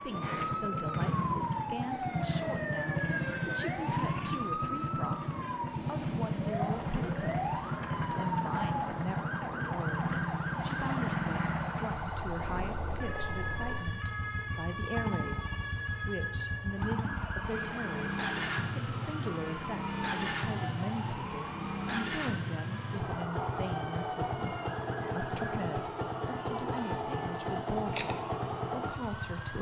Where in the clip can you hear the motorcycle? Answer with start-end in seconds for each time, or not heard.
0.0-29.5.